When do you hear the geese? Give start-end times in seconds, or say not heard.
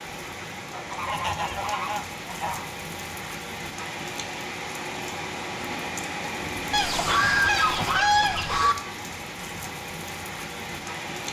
0.7-2.6, 6.7-8.8.